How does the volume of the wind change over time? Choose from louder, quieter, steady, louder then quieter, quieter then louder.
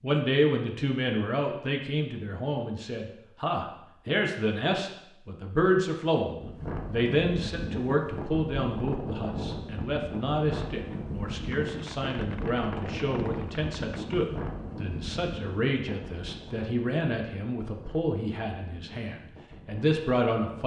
quieter.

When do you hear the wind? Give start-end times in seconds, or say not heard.
6.2-20.6.